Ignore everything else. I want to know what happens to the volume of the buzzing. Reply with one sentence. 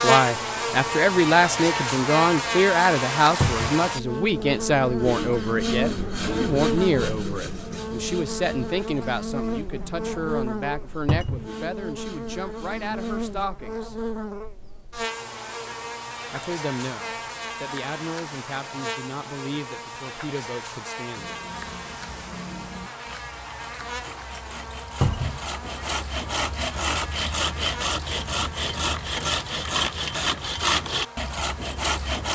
The loudness of the buzzing goes down.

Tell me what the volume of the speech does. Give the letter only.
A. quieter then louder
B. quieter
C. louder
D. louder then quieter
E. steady
B.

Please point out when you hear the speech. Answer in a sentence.
The speech can be heard from 0.0 to 13.9 s and from 16.3 to 21.3 s.